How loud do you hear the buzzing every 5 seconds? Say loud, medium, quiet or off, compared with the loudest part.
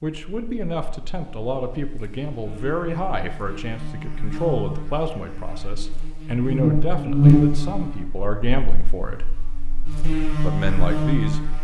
quiet, loud, loud.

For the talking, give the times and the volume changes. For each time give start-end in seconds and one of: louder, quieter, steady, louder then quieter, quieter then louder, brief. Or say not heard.
0.0-9.2 steady
10.4-11.4 brief.